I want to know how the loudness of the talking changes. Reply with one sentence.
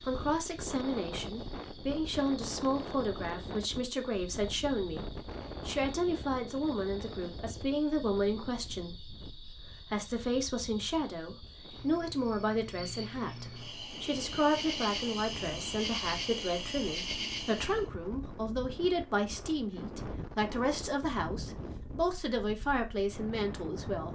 The volume of the talking stays about the same.